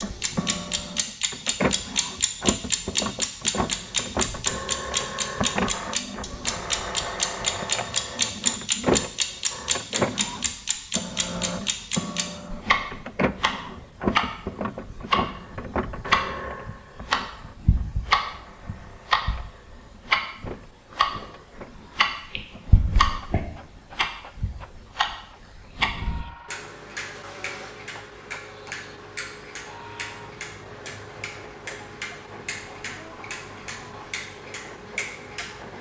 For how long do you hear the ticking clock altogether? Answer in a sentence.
You can hear the ticking clock for 36 seconds altogether.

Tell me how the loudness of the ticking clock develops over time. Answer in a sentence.
The volume of the ticking clock goes down.